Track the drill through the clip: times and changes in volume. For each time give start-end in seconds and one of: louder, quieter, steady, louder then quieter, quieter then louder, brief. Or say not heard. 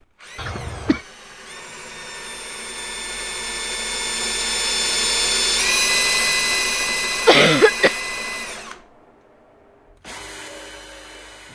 0.0-11.5 louder then quieter.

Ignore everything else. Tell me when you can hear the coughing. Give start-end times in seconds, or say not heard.
0.3-1.0, 7.2-8.0.